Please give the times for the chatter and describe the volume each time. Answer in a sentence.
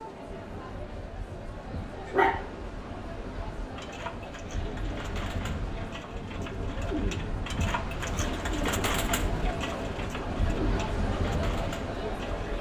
The chatter can be heard from 0.0 to 12.5 s, getting louder.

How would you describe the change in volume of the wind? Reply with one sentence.
The volume of the wind goes up.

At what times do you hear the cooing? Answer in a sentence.
The cooing can be heard from 3.8 to 12.4 s.